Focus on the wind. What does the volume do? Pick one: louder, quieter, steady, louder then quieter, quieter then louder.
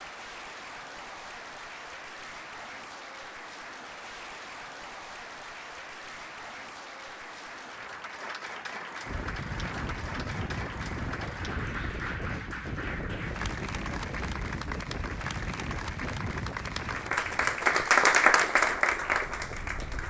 quieter.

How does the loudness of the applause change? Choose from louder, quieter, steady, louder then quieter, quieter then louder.
louder.